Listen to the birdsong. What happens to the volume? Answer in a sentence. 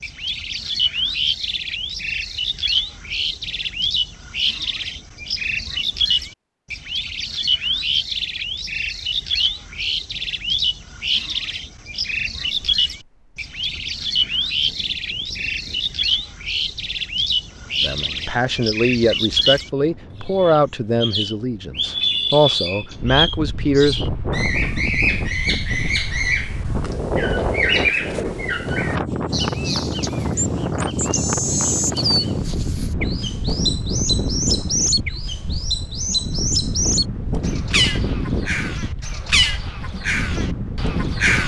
The loudness of the birdsong stays about the same.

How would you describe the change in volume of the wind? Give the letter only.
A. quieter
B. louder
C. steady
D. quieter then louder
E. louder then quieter
B.